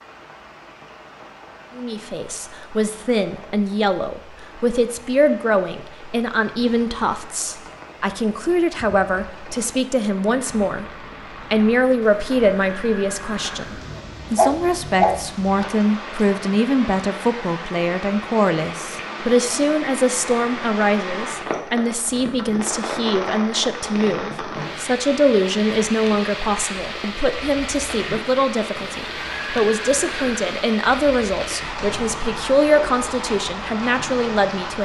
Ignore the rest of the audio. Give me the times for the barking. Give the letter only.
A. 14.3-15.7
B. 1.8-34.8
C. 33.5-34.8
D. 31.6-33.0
A.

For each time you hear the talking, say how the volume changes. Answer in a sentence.
You can hear the talking from 1.8 to 34.8 s, at a steady volume.